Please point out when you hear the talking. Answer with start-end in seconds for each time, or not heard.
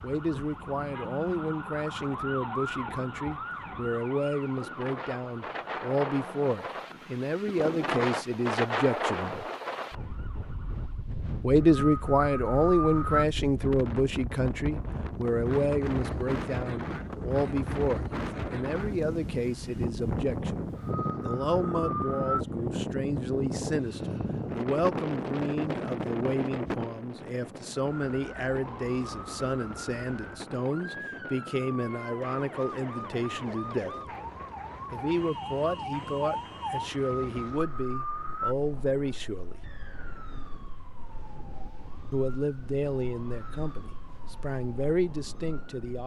0.0-9.4, 11.4-33.9, 34.9-39.6, 42.1-46.0.